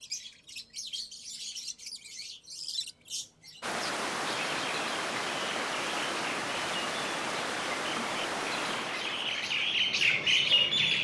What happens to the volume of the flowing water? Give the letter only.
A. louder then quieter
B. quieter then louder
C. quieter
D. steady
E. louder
C.